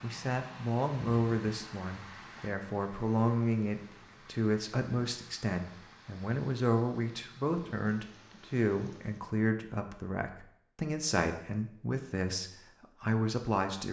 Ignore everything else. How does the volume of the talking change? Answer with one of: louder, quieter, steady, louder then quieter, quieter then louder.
steady.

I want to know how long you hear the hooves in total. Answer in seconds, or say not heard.
not heard.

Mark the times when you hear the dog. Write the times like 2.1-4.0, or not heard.
not heard.